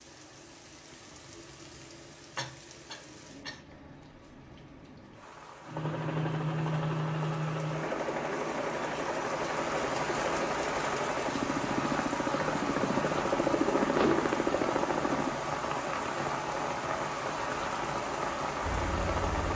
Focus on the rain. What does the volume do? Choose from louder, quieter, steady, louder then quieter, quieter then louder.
louder.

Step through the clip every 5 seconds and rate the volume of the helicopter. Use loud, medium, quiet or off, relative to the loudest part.
off, loud, loud, medium.